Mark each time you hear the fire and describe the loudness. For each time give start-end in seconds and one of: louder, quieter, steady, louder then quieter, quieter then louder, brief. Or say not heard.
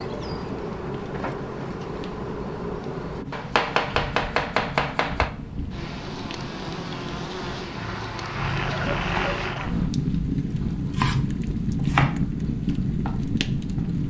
0.0-14.0 louder.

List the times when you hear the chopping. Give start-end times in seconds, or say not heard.
3.3-5.3, 10.8-12.2.